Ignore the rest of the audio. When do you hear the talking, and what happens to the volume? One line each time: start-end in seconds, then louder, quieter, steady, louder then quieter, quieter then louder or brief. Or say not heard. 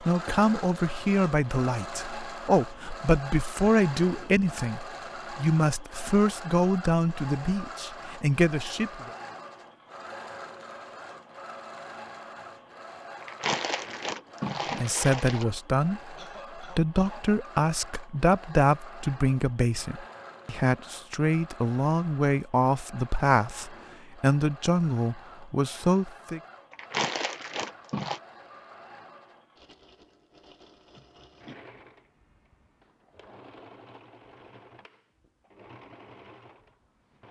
0.0-9.1 steady
14.8-26.4 steady.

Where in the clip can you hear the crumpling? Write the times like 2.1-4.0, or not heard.
13.2-15.4, 26.7-28.2.